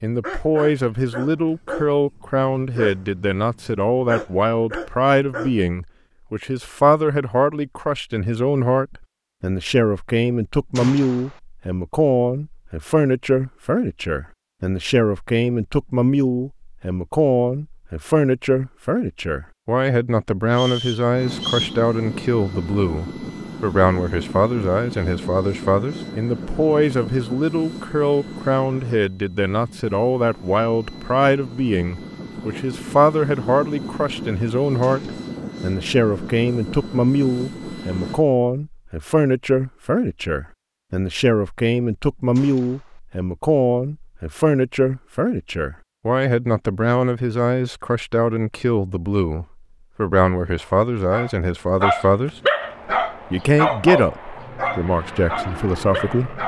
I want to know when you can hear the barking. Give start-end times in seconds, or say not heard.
0.0-5.7, 50.6-56.4.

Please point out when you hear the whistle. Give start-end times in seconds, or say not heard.
20.5-21.8.